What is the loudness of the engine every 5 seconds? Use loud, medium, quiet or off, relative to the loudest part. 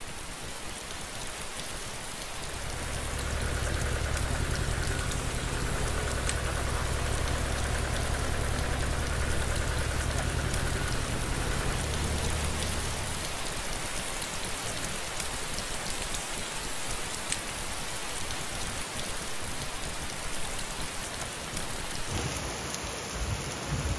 loud, loud, loud, off, off.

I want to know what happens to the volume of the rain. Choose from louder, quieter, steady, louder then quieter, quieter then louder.
steady.